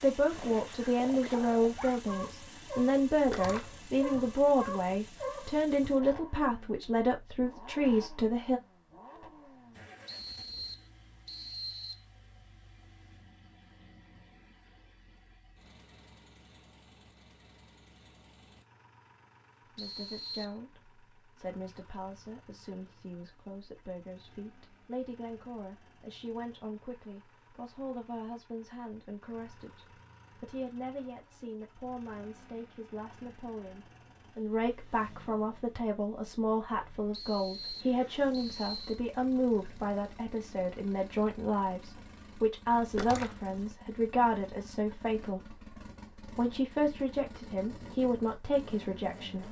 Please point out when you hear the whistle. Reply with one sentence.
The whistle can be heard from 10.1 to 12.0 s, from 19.8 to 20.6 s and from 37.1 to 39.0 s.